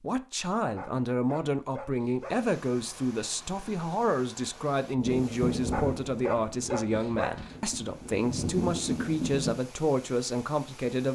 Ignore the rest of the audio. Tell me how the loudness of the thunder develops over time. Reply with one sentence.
The loudness of the thunder goes down, then up.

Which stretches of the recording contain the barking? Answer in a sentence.
The barking can be heard from 0.8 to 2.5 s and from 5.7 to 7.5 s.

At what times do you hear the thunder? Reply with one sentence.
The thunder can be heard from 5.0 to 9.6 s.